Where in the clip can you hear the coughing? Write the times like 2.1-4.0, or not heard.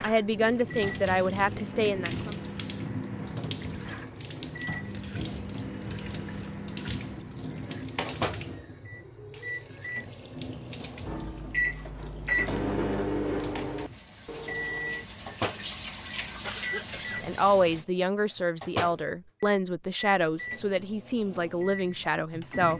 16.4-17.2.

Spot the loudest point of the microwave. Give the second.
13 s.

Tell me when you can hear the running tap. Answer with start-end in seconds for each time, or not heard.
0.0-17.9.